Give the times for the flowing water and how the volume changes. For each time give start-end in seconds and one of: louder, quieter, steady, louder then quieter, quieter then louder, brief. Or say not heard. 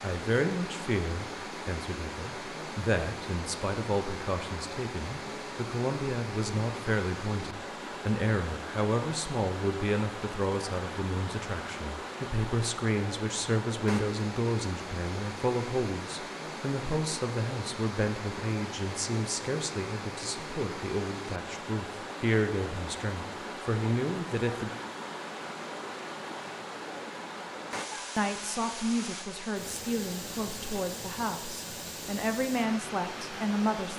0.0-33.9 steady.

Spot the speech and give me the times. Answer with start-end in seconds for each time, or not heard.
0.0-24.8, 28.1-33.9.